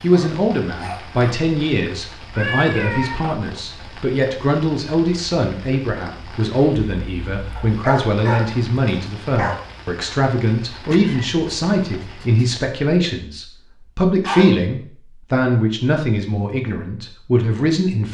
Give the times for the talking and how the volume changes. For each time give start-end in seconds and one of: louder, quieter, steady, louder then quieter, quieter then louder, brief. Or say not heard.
0.0-18.1 steady.